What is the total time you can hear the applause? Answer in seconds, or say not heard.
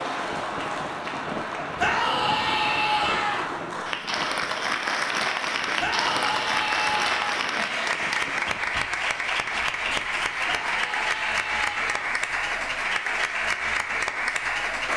15 s.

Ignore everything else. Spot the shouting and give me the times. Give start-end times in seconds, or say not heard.
1.8-3.5, 5.8-7.5, 10.4-12.1.